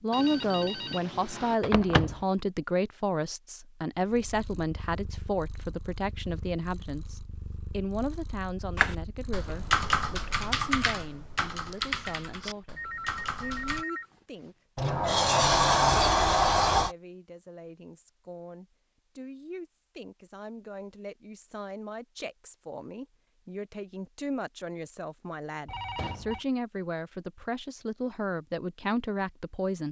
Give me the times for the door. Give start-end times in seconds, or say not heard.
1.6-2.2, 14.8-16.9, 25.9-26.4.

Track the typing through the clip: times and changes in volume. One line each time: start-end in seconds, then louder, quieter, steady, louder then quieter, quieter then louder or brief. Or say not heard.
8.8-13.8 quieter.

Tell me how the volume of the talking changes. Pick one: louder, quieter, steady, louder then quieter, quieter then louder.
quieter then louder.